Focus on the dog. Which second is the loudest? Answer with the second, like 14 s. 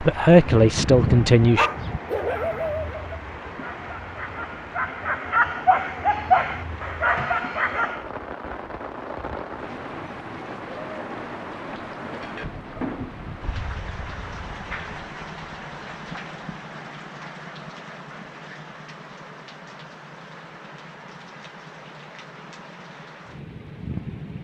6 s.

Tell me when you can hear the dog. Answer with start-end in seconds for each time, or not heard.
0.3-8.1.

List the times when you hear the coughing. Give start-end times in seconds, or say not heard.
not heard.